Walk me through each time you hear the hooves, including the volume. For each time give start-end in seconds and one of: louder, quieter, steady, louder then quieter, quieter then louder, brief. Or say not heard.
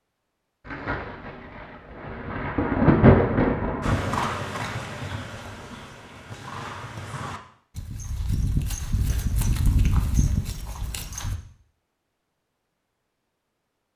3.8-11.3 quieter then louder.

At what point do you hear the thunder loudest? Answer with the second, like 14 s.
3 s.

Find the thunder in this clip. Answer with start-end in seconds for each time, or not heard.
0.7-4.3.